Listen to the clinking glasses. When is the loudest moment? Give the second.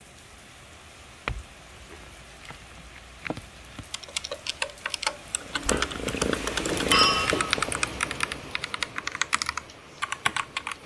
7 s.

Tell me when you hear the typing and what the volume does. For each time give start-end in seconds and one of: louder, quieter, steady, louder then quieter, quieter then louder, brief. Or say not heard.
3.9-10.8 steady.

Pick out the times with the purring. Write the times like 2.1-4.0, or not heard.
5.3-7.3.